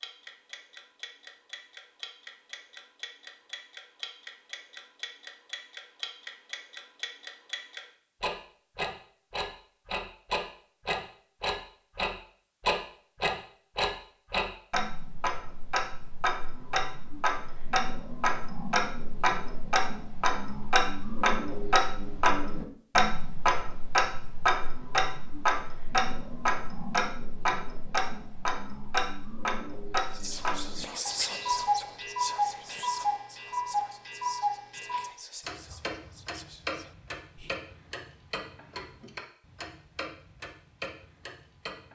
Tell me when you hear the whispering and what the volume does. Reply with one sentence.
The whispering can be heard from 30.1 to 37.5 s, getting quieter.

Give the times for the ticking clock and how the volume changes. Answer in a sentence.
You can hear the ticking clock from 0.0 to 41.9 s, getting louder then quieter.